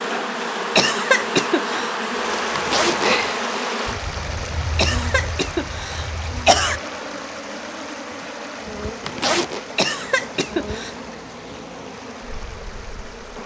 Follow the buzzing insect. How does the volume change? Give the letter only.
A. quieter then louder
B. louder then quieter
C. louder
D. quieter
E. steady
D.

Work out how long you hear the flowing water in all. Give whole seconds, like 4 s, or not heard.
11 s.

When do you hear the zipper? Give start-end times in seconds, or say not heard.
2.5-3.4, 9.0-9.7.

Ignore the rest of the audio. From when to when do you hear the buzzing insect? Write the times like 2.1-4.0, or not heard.
0.0-13.4.